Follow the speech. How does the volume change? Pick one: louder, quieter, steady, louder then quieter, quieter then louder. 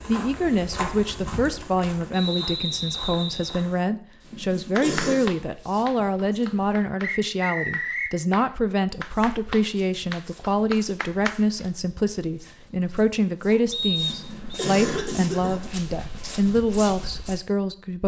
steady.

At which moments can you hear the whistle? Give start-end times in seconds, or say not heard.
2.1-3.6, 7.0-8.2, 13.7-14.7.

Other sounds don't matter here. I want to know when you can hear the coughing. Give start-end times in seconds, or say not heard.
4.3-5.2, 14.1-15.6.